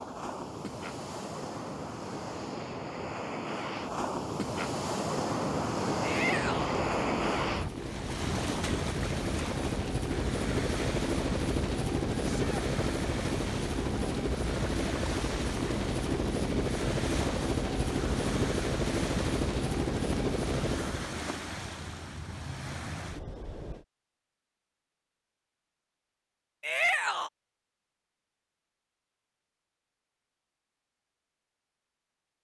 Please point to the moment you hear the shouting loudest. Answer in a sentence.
The volume of the shouting peaks at 27 seconds.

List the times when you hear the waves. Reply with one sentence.
The waves can be heard from 0.0 to 23.9 s.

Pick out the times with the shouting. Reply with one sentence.
The shouting can be heard from 6.0 to 6.8 s, from 12.2 to 12.6 s and from 26.6 to 27.3 s.